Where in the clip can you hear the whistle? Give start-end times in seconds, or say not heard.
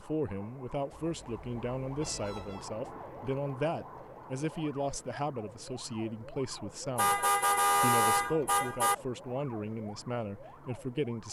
not heard.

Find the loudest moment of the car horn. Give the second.
8 s.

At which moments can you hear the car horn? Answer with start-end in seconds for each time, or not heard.
0.9-2.7, 7.0-8.9.